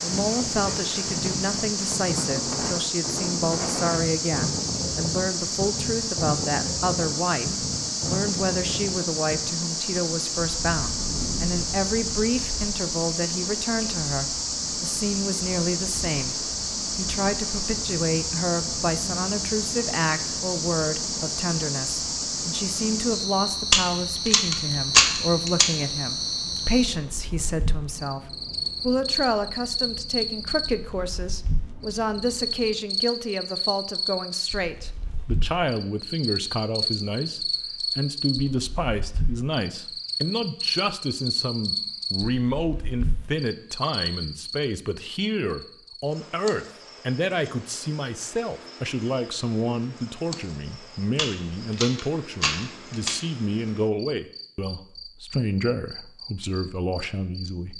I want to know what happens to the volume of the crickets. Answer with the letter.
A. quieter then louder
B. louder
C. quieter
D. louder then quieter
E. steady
C.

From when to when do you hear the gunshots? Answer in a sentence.
The gunshots can be heard from 23.7 to 25.8 s and from 51.1 to 53.2 s.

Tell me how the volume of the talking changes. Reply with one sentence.
The volume of the talking stays about the same.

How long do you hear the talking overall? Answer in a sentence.
You can hear the talking for 58 seconds altogether.